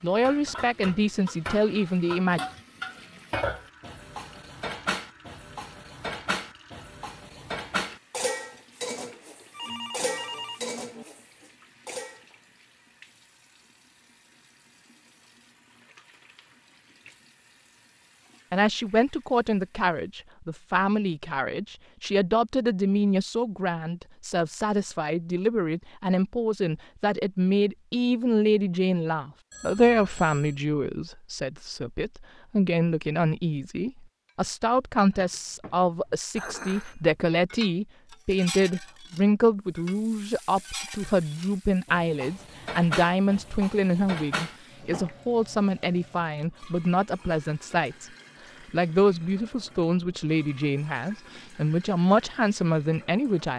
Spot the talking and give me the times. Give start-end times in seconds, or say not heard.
0.0-2.4, 18.5-48.1, 48.7-53.5.